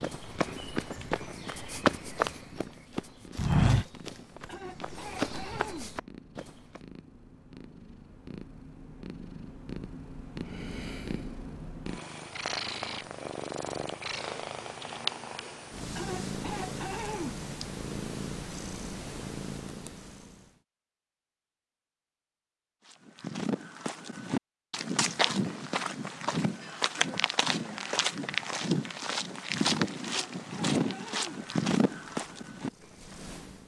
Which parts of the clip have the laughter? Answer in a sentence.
The laughter can't be heard in this clip.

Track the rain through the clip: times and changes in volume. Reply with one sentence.
You can't hear the rain here.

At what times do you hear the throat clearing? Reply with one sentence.
The throat clearing can be heard from 4.5 to 6.0 s, from 15.9 to 17.4 s and from 30.0 to 31.4 s.